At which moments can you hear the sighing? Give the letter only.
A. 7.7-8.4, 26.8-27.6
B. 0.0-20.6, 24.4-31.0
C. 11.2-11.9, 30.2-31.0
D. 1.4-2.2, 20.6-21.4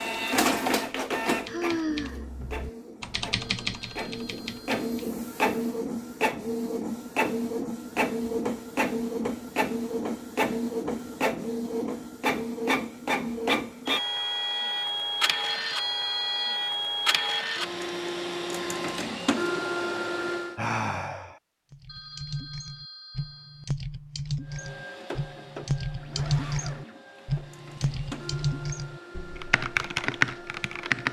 D.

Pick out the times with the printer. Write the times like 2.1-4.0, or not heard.
0.0-20.6, 24.4-31.0.